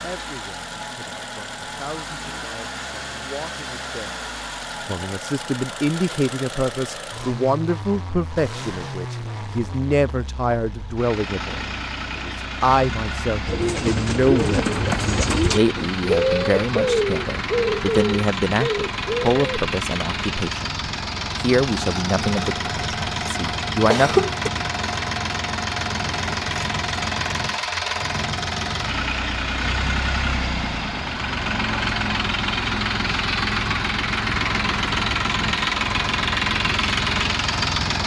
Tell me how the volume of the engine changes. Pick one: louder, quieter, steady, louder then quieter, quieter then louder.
louder.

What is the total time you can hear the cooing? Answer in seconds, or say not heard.
6 s.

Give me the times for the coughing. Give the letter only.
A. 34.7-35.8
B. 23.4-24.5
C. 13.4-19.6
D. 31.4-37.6
B.